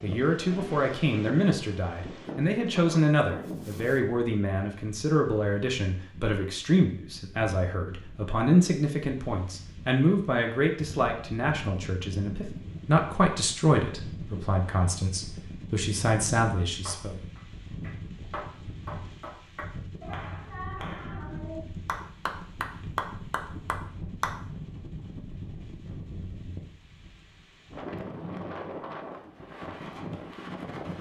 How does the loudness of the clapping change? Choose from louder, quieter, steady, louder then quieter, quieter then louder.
louder.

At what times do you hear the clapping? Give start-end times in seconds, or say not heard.
16.9-24.4.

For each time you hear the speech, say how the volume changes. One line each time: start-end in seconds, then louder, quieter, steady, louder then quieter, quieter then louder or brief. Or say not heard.
0.0-17.1 steady.